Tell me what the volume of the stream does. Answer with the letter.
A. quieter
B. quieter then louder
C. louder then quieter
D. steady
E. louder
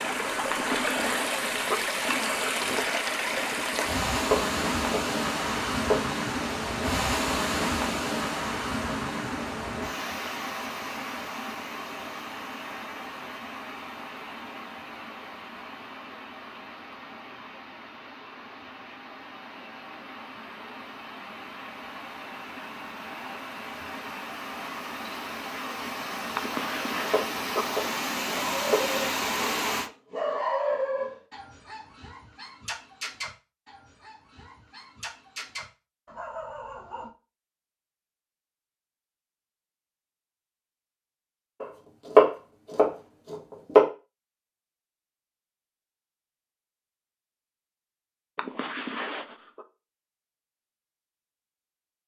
B.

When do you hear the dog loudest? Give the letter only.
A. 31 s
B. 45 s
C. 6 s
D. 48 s
A.